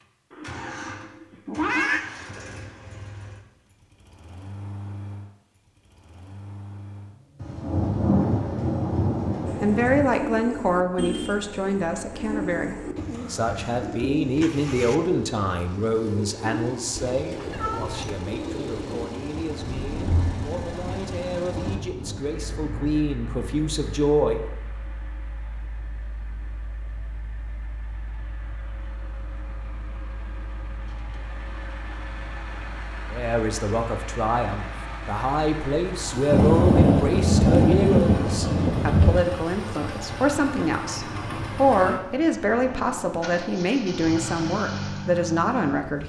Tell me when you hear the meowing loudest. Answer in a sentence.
The volume of the meowing peaks at 2 seconds.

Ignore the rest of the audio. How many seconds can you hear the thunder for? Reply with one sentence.
The thunder can be heard for 10 seconds in total.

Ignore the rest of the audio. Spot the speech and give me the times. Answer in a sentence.
You can hear the speech from 9.6 to 24.4 s and from 33.1 to 46.0 s.